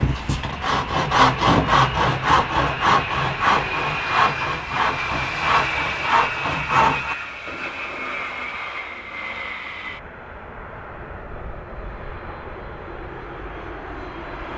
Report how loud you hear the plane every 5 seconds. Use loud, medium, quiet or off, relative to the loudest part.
loud, loud, medium.